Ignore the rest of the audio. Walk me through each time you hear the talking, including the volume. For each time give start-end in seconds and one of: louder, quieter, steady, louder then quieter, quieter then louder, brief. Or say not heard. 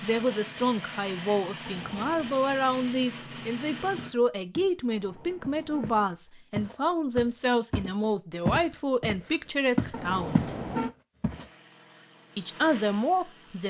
0.0-10.4 steady
12.3-13.6 brief.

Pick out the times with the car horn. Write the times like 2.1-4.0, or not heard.
1.6-2.4, 4.9-6.1, 9.9-10.9.